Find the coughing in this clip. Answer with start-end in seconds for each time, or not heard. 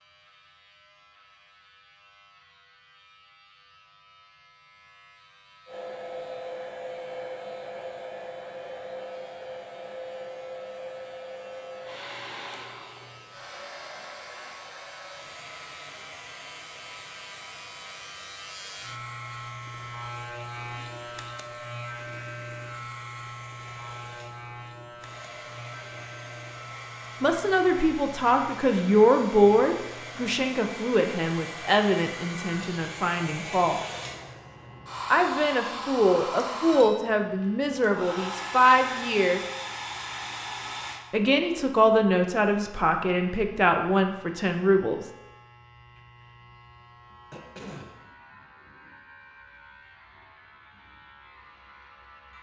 47.3-47.9.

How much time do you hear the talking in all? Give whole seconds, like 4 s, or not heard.
15 s.